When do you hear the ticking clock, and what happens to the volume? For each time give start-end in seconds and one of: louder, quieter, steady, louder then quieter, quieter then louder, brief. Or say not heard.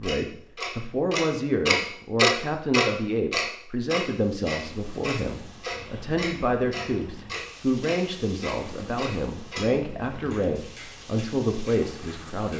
0.0-12.5 quieter.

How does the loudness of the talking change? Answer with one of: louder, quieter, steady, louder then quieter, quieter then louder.
steady.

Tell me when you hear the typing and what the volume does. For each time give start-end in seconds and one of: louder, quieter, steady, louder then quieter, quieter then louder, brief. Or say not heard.
not heard.